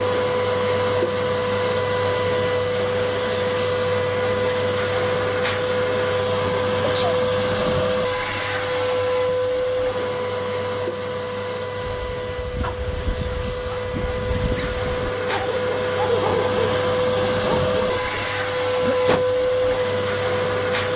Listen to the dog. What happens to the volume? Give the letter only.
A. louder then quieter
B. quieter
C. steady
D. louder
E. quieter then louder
A.